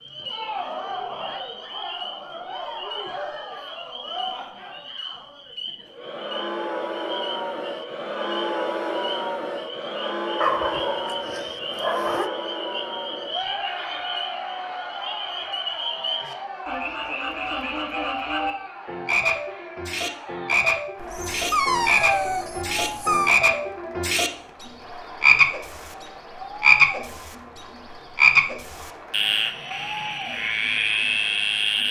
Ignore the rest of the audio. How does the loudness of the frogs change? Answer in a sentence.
The volume of the frogs goes up.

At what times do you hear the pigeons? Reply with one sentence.
The pigeons can't be heard in this clip.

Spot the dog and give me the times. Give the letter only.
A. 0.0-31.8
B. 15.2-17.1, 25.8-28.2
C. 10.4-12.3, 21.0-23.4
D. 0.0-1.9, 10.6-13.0
C.